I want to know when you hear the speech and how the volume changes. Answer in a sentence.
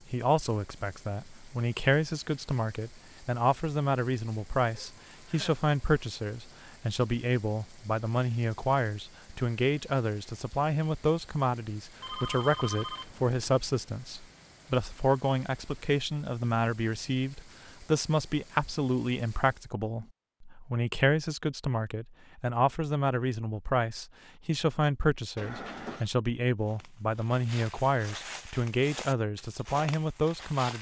The speech can be heard from 0.1 to 30.7 s, at a steady volume.